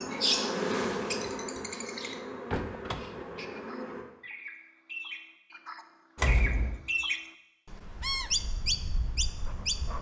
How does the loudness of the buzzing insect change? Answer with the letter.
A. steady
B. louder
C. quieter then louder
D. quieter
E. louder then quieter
D.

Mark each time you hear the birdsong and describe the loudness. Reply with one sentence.
The birdsong can be heard from 0.0 to 9.9 s, getting quieter then louder.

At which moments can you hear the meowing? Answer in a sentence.
You can't hear the meowing here.